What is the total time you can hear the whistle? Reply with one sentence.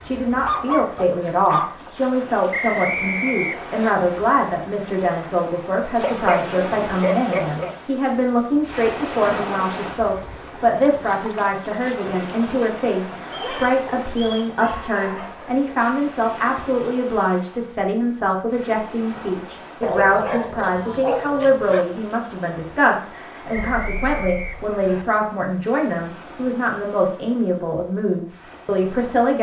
You can hear the whistle for 4 seconds altogether.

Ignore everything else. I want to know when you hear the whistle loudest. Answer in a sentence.
The volume of the whistle peaks at 3 seconds.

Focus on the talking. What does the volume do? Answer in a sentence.
The loudness of the talking stays about the same.